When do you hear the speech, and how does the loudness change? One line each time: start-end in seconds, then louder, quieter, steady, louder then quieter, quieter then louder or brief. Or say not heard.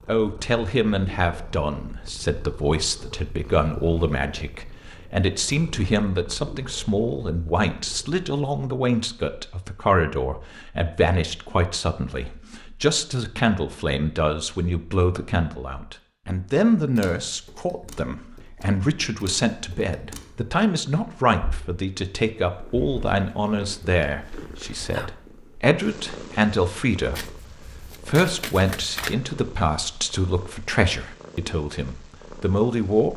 0.1-33.1 steady.